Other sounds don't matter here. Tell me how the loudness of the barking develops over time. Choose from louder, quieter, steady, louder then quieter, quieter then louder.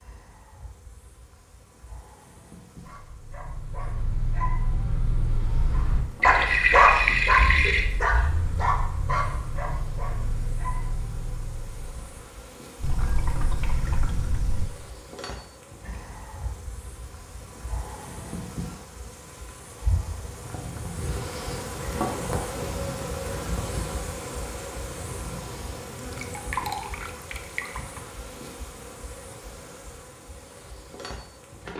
louder then quieter.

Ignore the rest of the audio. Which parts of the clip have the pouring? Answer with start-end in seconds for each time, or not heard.
6.2-7.8, 12.8-14.7, 25.9-28.0.